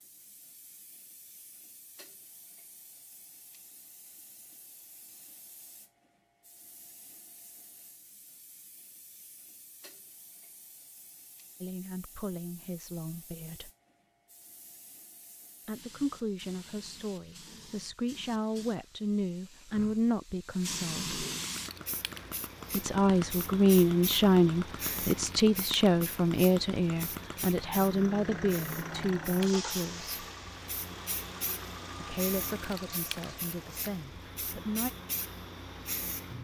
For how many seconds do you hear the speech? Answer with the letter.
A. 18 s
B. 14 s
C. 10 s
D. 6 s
A.